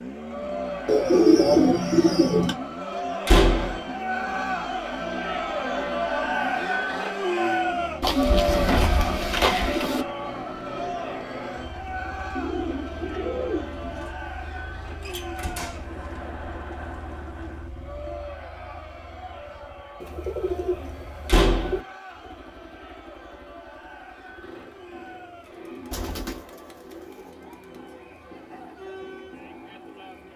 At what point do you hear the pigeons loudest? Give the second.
1 s.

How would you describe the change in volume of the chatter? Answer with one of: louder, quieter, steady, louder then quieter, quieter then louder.
quieter.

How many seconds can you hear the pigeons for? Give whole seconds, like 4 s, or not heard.
9 s.